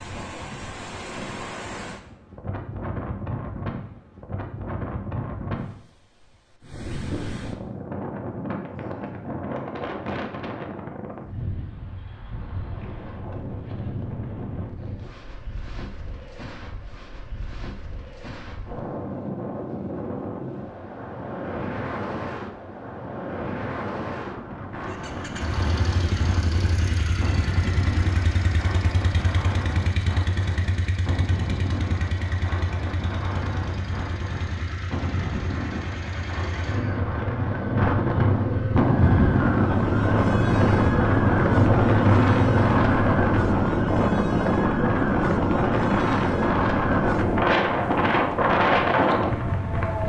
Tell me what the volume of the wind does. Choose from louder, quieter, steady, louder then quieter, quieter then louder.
louder.